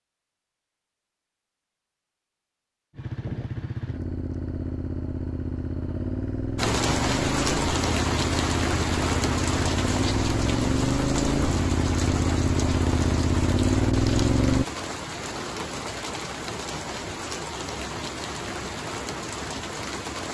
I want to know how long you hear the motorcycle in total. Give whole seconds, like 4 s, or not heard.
12 s.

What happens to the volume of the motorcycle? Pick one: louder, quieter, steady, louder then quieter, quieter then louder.
louder.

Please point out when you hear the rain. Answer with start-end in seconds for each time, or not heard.
6.5-20.2.